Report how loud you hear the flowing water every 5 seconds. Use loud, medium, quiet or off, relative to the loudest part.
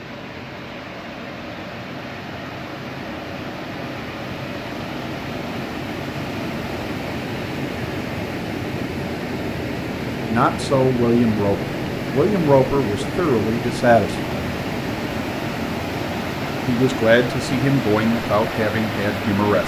medium, loud, loud, loud.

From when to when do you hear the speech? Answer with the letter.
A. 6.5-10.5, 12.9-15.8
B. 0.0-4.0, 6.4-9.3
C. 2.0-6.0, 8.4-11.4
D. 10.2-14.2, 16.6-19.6
D.